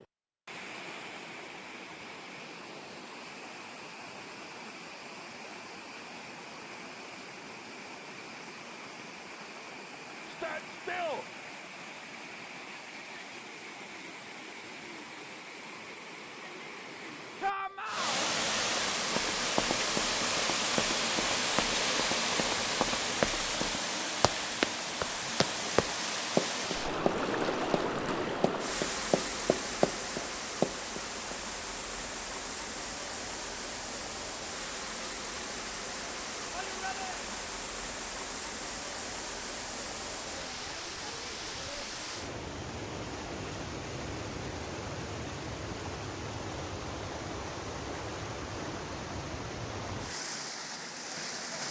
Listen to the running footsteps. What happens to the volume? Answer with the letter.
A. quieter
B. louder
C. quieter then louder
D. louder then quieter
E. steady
B.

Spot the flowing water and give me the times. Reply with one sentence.
You can hear the flowing water from 0.0 to 51.6 s.